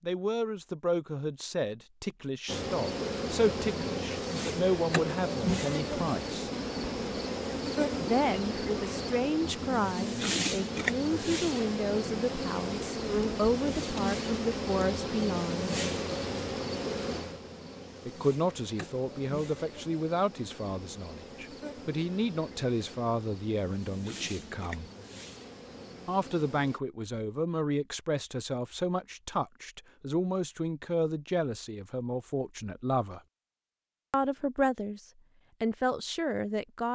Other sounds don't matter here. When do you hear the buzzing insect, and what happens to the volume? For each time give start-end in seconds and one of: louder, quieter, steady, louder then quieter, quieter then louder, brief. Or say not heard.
2.5-26.8 quieter.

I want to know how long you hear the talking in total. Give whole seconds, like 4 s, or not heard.
31 s.